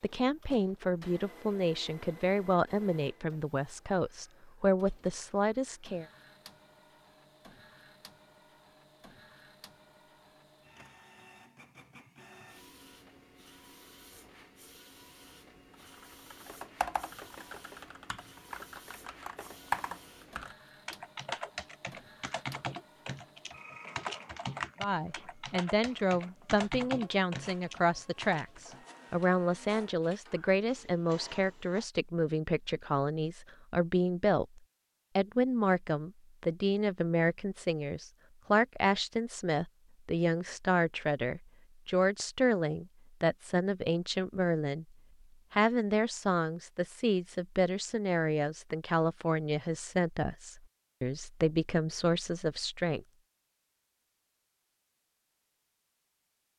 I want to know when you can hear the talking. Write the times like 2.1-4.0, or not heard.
0.0-6.0, 24.8-44.9, 45.5-53.0.